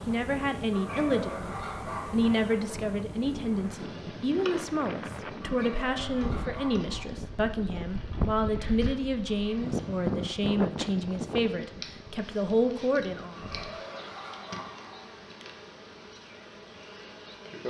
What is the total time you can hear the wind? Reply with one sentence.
The wind can be heard for 14 seconds in total.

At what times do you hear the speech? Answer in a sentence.
The speech can be heard from 0.1 to 13.3 s.